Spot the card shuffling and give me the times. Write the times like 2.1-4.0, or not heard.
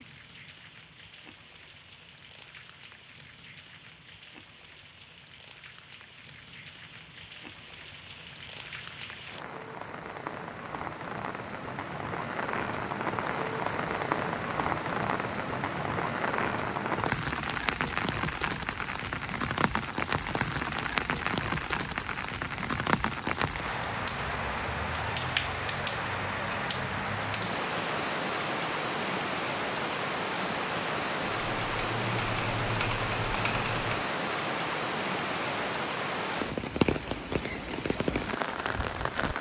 not heard.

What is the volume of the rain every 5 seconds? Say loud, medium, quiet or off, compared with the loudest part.
quiet, quiet, loud, loud, loud, loud, loud, loud.